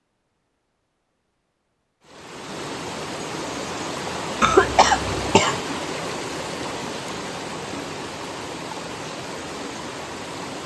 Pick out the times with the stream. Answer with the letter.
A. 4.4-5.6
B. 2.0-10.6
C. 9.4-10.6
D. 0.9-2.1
B.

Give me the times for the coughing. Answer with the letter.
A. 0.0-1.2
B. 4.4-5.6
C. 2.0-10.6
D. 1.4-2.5
B.